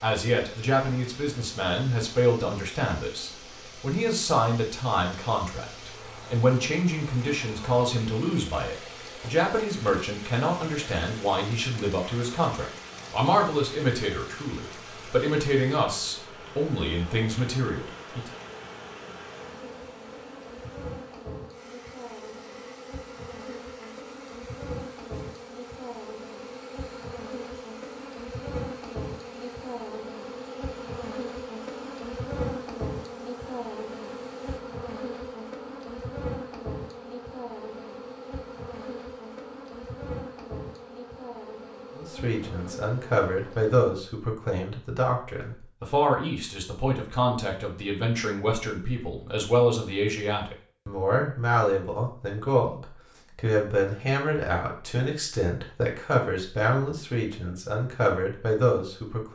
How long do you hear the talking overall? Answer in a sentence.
You can hear the talking for 36 seconds altogether.